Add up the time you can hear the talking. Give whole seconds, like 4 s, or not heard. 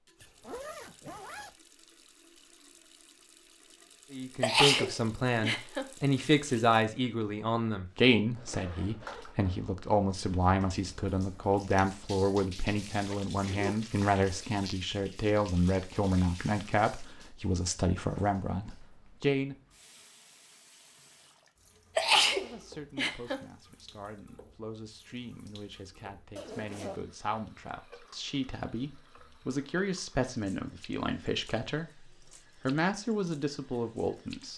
28 s.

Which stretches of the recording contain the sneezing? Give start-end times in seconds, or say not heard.
4.4-5.8, 21.9-23.4.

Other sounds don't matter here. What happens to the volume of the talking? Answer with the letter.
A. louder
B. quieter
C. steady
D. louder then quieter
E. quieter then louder
E.